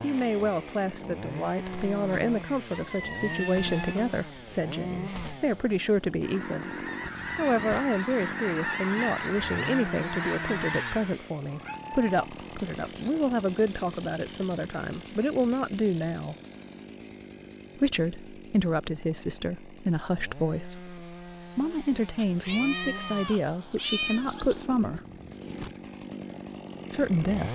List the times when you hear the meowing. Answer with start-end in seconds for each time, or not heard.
2.7-4.0, 11.4-12.0, 22.1-24.6.